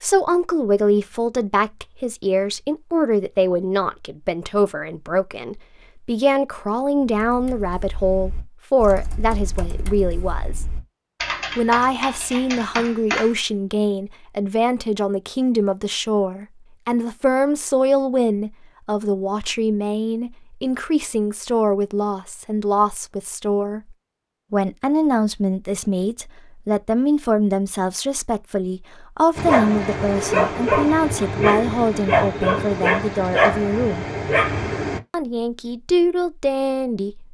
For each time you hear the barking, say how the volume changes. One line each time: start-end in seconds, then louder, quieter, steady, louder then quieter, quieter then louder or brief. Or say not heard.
29.4-35.0 steady.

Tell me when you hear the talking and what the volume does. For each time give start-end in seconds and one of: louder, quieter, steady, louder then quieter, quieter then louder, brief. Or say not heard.
0.0-10.7 steady
11.6-34.0 steady
35.1-37.2 brief.